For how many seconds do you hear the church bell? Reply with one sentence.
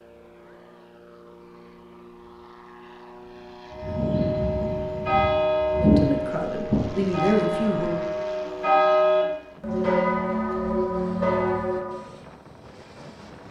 The church bell can be heard for 8 seconds in total.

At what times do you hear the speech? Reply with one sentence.
You can hear the speech from 5.7 to 8.1 s.